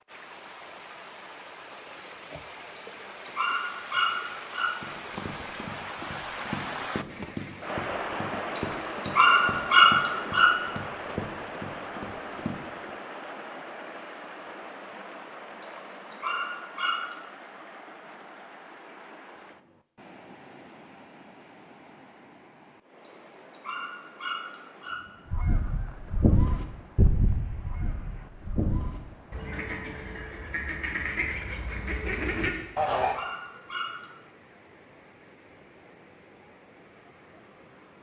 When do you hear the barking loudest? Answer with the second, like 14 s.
10 s.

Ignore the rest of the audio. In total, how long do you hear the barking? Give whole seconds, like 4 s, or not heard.
9 s.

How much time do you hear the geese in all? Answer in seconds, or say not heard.
8 s.